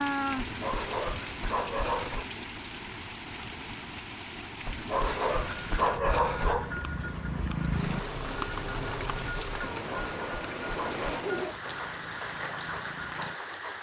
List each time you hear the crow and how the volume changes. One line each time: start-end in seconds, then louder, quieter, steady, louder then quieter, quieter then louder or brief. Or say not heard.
not heard.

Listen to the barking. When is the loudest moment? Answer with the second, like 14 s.
6 s.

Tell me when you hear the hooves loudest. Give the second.
8 s.